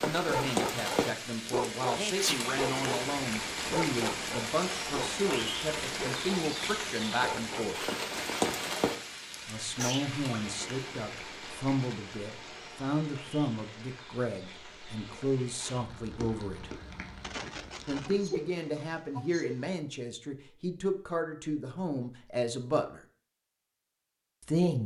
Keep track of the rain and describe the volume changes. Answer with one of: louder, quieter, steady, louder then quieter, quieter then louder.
quieter.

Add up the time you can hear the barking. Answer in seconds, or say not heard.
7 s.